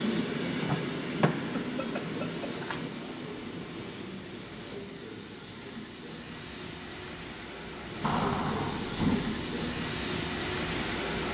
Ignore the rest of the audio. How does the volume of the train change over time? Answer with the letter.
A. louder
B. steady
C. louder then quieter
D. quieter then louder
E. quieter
D.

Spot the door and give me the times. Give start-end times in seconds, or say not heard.
0.6-1.6, 8.0-9.7.